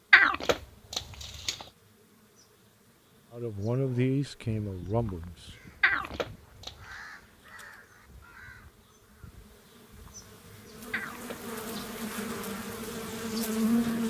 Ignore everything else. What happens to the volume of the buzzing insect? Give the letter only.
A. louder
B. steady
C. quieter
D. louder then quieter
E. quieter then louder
A.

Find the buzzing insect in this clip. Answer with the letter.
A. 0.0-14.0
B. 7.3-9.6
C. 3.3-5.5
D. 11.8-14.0
A.